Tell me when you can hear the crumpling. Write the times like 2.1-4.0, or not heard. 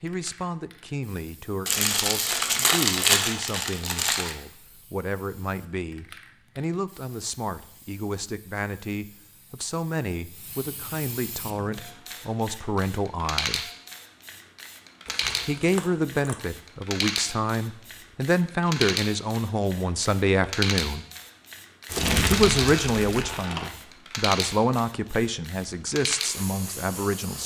1.6-4.3, 15.1-16.4, 21.9-23.7.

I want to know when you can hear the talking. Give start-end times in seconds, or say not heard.
0.0-13.7, 15.4-21.1, 22.3-27.4.